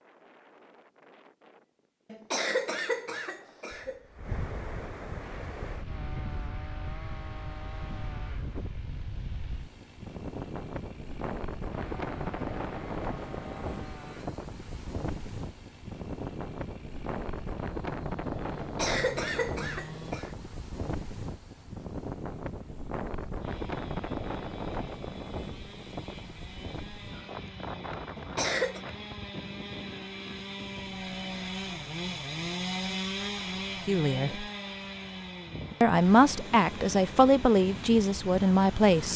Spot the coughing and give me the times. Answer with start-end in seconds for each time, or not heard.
2.1-4.0, 18.6-20.3, 28.1-28.8.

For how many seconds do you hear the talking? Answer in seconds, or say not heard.
4 s.